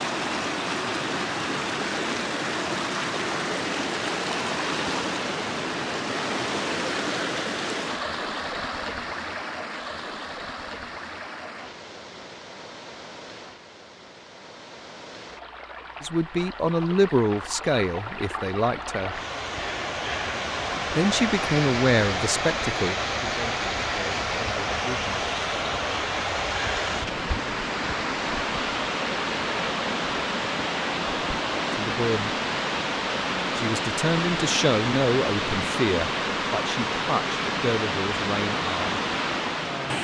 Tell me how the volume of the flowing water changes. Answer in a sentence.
The volume of the flowing water goes down, then up.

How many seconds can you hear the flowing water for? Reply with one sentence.
You can hear the flowing water for 40 seconds altogether.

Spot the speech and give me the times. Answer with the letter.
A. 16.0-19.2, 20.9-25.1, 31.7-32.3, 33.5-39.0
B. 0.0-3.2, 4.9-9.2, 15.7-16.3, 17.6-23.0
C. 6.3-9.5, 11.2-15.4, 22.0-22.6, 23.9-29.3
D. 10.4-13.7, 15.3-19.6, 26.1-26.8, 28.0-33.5
A.